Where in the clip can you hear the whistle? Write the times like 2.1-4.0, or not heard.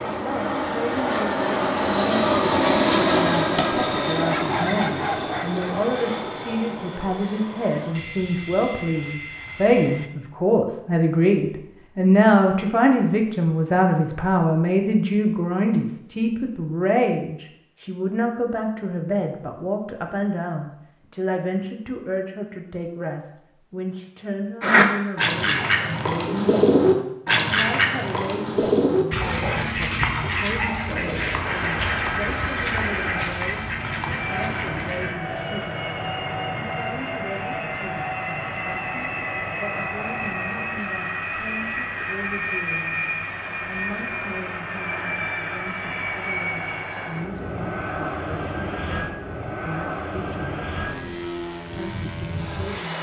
not heard.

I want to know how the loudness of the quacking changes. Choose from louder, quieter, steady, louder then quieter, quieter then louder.
quieter.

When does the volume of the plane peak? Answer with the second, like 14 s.
3 s.